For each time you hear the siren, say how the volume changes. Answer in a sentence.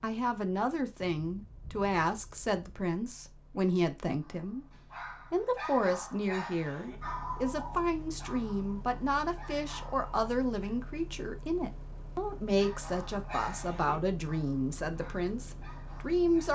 The siren can't be heard in this clip.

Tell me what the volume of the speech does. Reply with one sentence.
The loudness of the speech stays about the same.